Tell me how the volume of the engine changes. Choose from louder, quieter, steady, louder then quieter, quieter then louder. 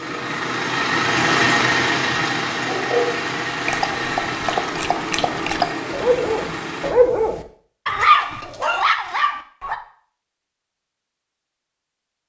quieter.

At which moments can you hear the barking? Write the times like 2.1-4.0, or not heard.
2.6-9.8.